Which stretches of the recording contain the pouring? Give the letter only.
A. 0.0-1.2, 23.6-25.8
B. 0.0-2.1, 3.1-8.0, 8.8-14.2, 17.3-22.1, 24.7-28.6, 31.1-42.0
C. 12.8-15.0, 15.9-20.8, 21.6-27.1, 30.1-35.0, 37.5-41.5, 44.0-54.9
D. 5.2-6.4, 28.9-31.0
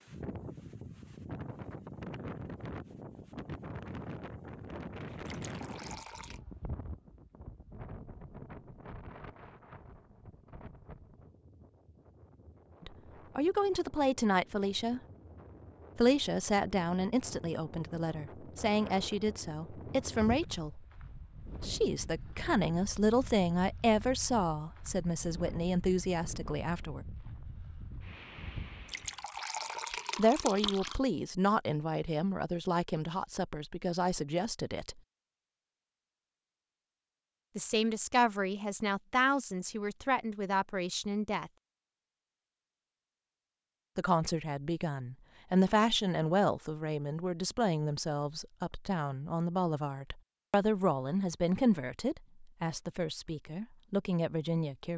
D.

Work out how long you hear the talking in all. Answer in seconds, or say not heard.
32 s.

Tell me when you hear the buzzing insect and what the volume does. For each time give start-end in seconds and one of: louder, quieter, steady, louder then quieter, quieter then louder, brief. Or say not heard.
not heard.